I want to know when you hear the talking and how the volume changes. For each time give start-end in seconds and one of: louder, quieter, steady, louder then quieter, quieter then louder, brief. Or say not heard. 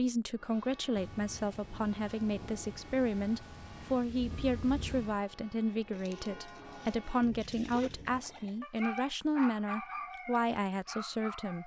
0.0-11.6 steady.